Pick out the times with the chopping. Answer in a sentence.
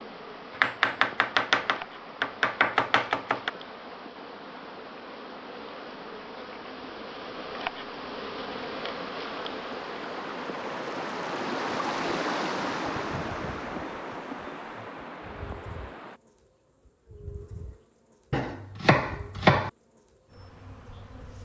The chopping can be heard from 0.6 to 3.5 s and from 18.3 to 19.7 s.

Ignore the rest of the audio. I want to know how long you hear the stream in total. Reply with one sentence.
You can hear the stream for 16 seconds altogether.